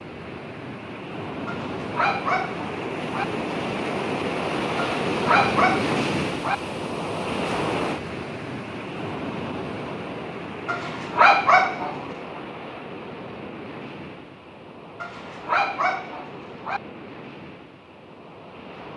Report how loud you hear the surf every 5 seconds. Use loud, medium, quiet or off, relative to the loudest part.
loud, loud, medium, quiet.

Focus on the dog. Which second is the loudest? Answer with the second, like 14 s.
11 s.